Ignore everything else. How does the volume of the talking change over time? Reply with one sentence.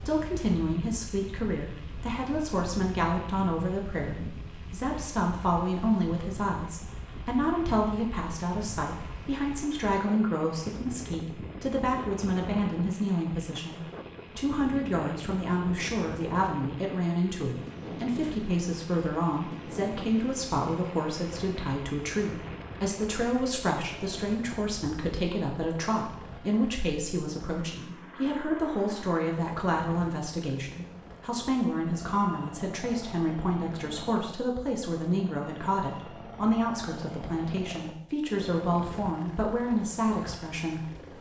The loudness of the talking stays about the same.